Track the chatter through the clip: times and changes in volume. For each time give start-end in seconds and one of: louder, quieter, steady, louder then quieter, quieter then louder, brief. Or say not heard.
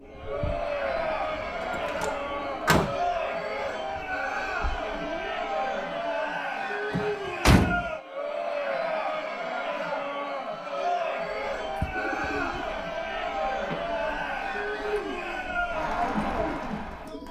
0.1-17.2 steady.